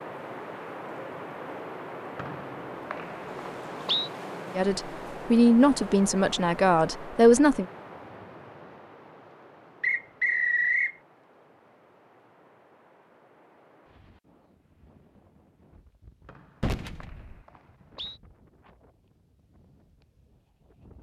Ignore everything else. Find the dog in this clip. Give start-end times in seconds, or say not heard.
not heard.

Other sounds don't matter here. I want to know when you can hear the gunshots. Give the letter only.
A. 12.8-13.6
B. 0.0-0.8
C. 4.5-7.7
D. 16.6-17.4
D.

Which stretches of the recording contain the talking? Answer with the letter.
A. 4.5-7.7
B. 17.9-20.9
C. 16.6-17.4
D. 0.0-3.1
A.